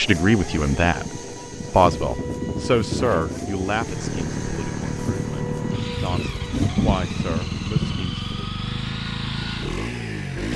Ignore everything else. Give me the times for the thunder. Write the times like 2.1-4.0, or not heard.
6.5-8.1.